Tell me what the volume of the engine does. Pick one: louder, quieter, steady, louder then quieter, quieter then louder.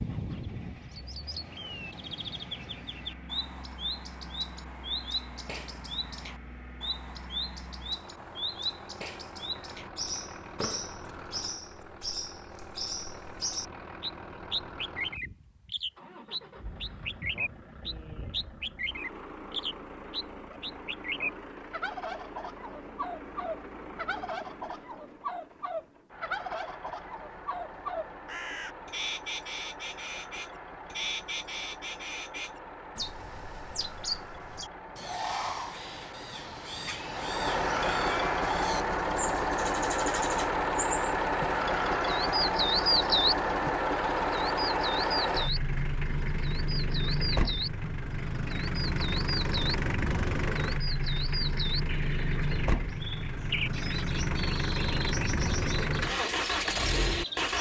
louder.